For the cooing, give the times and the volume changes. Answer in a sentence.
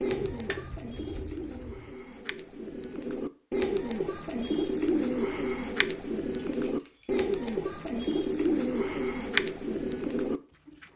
You can hear the cooing from 0.0 to 10.9 s, getting louder.